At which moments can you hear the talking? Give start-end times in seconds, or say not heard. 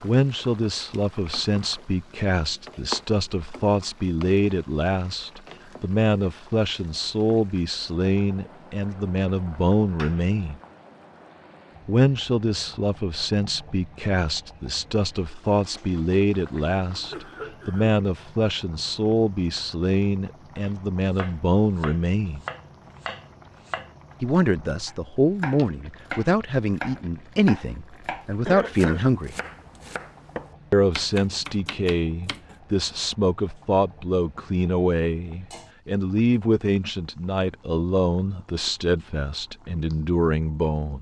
0.0-10.6, 11.8-22.4, 24.2-29.4, 30.7-40.9.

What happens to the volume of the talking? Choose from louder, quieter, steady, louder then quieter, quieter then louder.
steady.